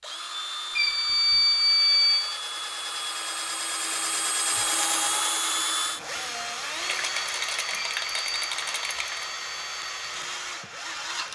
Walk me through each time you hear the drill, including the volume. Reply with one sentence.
You can hear the drill from 0.0 to 11.2 s, getting louder then quieter.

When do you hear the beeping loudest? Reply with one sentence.
The loudest moment of the beeping is at 2 seconds.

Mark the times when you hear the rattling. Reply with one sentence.
The rattling can be heard from 6.8 to 9.2 s.